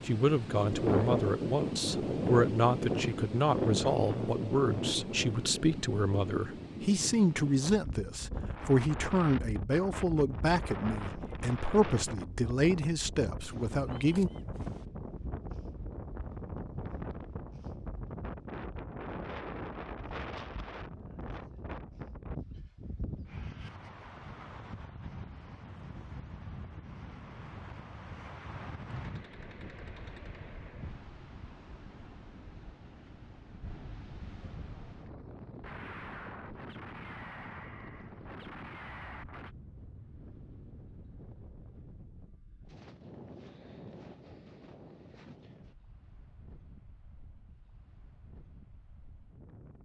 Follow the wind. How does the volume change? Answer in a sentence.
The loudness of the wind goes down.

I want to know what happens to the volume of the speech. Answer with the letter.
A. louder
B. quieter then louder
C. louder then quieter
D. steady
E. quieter
D.